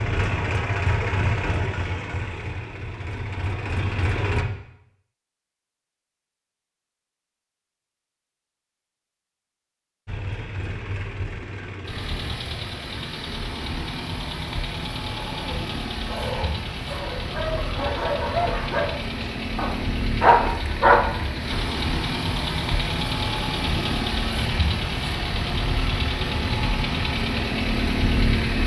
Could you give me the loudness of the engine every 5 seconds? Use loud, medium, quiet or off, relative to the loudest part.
loud, off, medium, medium, loud, loud.